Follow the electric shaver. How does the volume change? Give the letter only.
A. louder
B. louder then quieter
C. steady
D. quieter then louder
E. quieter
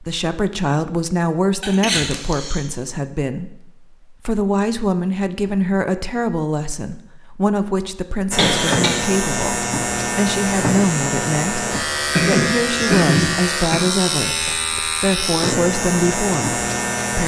C.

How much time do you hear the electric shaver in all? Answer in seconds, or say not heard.
9 s.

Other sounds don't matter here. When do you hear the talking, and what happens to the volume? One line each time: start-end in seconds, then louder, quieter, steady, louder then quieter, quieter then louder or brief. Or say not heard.
0.0-17.2 steady.